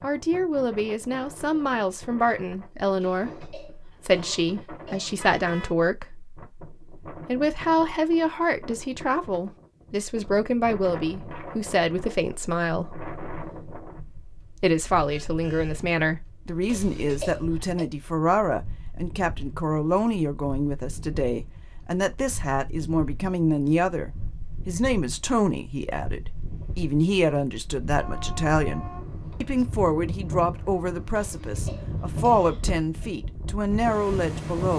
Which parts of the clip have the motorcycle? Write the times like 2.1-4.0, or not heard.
not heard.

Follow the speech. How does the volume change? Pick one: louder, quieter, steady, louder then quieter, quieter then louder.
steady.